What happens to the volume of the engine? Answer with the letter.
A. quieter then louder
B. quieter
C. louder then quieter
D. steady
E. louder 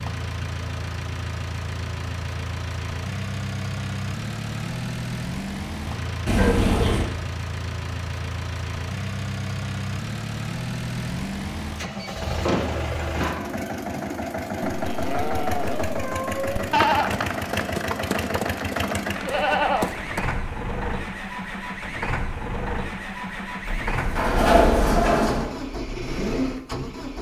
D.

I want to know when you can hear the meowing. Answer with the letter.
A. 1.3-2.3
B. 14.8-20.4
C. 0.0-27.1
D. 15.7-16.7
D.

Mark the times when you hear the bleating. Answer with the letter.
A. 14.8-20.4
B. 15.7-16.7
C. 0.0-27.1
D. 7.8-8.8
A.